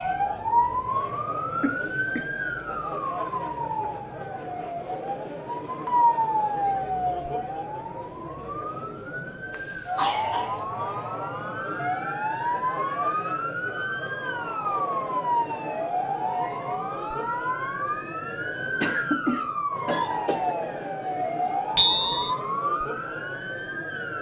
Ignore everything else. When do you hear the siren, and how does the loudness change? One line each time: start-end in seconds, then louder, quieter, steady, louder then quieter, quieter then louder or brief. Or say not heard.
0.0-24.1 steady.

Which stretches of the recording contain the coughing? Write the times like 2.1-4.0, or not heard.
1.6-2.2, 9.5-10.6, 18.8-20.6.